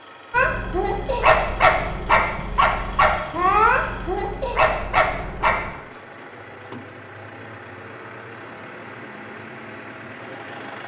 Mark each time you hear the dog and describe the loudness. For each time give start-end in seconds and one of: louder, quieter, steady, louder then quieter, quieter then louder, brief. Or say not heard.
0.3-5.7 steady.